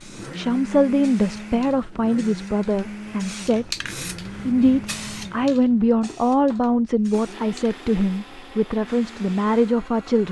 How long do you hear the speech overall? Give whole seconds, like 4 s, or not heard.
9 s.